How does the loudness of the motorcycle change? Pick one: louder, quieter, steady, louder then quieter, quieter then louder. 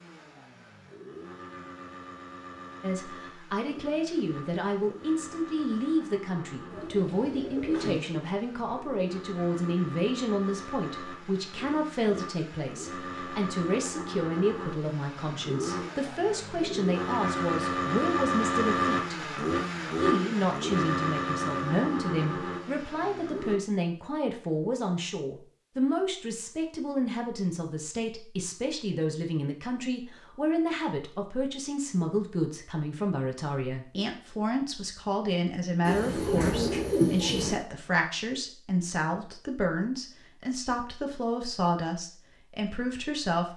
louder.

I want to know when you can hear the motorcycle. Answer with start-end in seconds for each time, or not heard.
0.0-23.6.